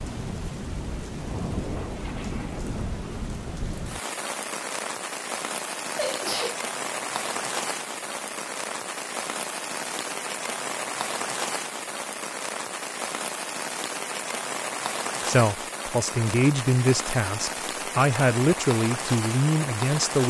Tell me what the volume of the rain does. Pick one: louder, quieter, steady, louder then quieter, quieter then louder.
steady.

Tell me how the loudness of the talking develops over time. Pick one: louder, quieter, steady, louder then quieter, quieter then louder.
steady.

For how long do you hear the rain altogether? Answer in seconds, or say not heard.
20 s.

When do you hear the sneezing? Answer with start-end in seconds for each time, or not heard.
6.0-6.6.